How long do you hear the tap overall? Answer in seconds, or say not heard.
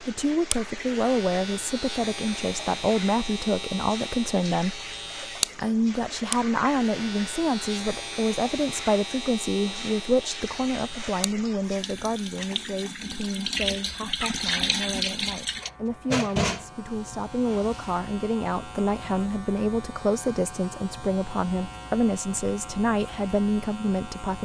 18 s.